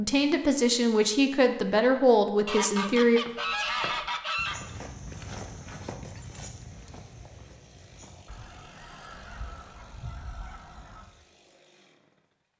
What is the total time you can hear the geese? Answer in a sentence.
The geese can be heard for 5 seconds in total.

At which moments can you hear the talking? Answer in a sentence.
The talking can be heard from 0.0 to 3.2 s.